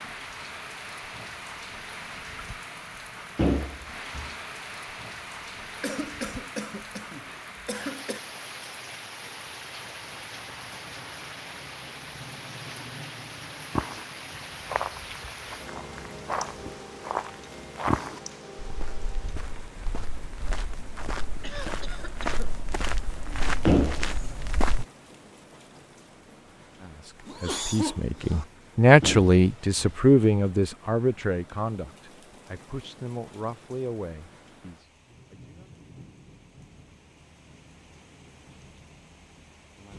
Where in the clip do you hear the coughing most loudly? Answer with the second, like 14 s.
28 s.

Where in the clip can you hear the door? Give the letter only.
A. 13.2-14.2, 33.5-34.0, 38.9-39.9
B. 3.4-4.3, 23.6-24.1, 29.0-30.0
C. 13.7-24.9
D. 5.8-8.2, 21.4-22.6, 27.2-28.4
B.